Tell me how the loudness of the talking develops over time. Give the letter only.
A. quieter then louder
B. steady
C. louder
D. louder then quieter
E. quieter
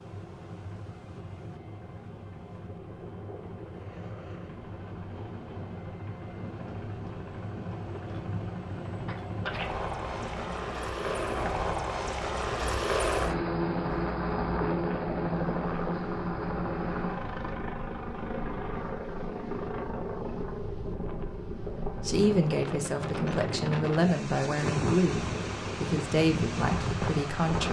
B.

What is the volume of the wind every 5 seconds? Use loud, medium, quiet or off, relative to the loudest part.
quiet, quiet, medium, medium, loud, loud.